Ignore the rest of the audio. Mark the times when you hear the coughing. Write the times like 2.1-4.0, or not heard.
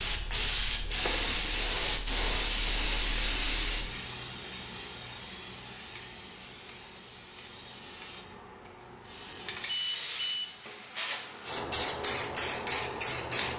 not heard.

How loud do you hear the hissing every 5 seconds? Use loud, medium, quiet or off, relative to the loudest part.
loud, medium, loud.